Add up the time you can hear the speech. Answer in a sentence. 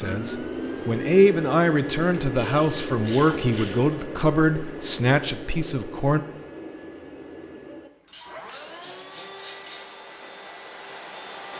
You can hear the speech for 6 seconds altogether.